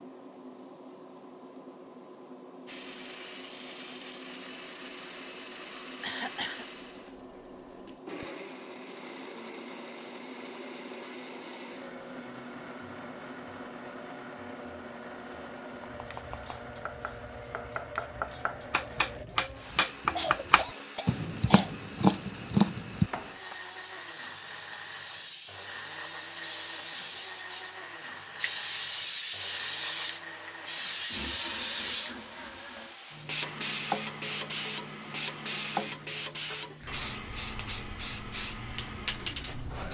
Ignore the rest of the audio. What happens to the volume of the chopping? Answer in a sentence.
The volume of the chopping goes up.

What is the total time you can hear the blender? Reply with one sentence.
The blender can be heard for 37 seconds in total.